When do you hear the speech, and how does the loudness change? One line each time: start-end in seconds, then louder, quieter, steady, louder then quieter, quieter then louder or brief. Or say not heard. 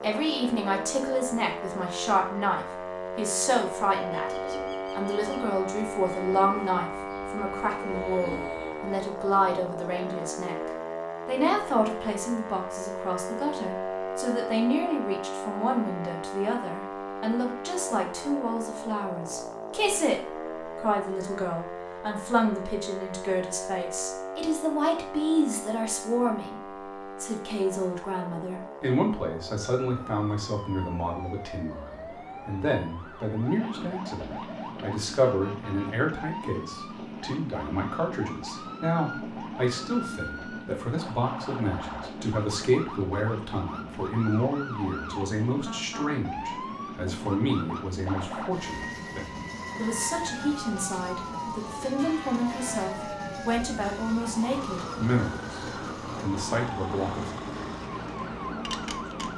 0.0-57.3 steady.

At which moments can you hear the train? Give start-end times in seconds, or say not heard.
33.5-59.3.